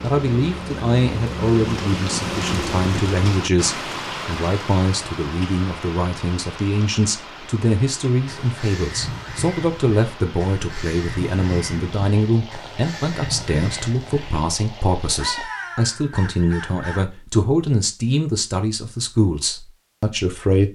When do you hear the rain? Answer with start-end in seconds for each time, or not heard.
0.0-15.5.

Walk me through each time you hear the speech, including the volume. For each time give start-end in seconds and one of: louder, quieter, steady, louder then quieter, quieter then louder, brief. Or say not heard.
0.0-20.7 steady.